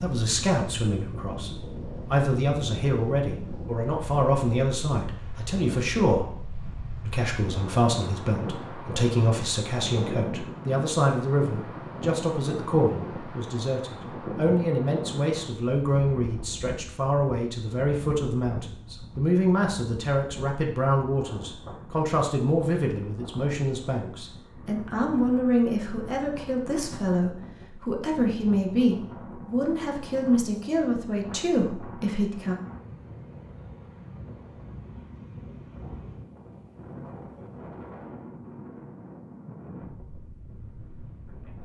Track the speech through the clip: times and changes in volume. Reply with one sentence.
You can hear the speech from 0.0 to 32.5 s, at a steady volume.